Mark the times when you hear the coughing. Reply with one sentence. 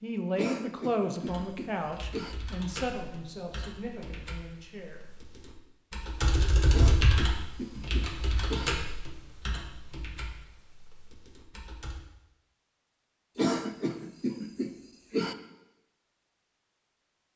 You can hear the coughing from 0.3 to 2.4 s, from 6.7 to 8.7 s and from 13.3 to 15.3 s.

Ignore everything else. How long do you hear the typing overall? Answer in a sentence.
The typing can be heard for 11 seconds in total.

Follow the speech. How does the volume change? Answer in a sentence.
The volume of the speech goes down.